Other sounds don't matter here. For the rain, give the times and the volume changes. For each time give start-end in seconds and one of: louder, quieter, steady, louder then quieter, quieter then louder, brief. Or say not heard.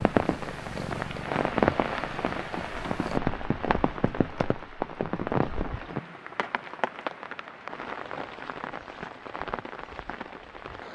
0.0-10.8 quieter.